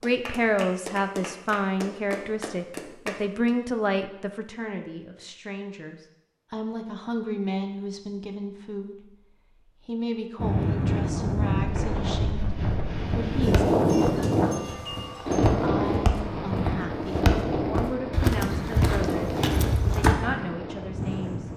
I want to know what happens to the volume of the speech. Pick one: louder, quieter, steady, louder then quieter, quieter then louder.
quieter.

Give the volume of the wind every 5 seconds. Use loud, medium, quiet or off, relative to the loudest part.
off, off, loud, loud, medium.